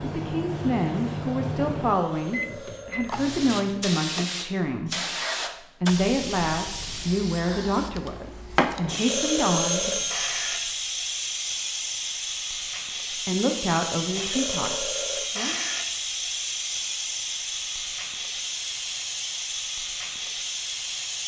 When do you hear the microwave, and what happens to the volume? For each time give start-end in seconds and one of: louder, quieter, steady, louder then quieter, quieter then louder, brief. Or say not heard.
0.0-4.4 quieter.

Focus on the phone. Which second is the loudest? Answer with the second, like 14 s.
10 s.